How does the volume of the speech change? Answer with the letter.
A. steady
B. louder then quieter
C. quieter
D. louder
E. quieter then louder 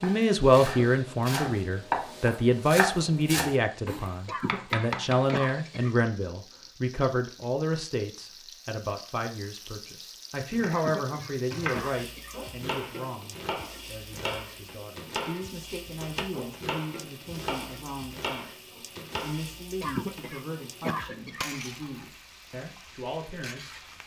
C.